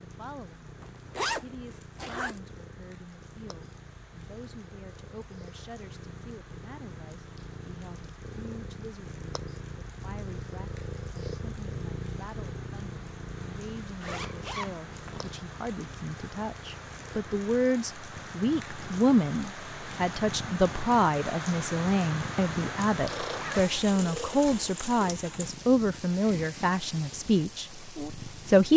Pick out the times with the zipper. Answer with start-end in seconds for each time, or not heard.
0.8-2.4, 14.0-15.3, 23.2-24.8.